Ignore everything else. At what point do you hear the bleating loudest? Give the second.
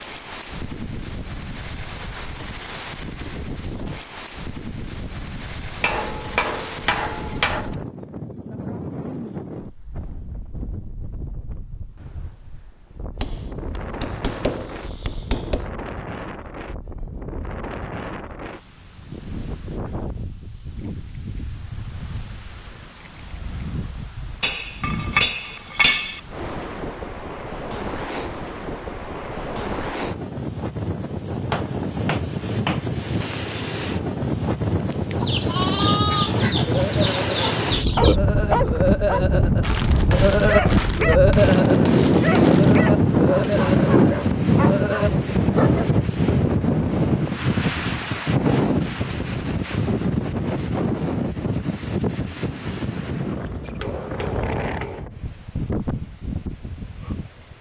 41 s.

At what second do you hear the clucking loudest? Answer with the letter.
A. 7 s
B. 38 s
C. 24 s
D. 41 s
B.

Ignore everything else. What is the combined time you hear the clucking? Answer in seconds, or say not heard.
3 s.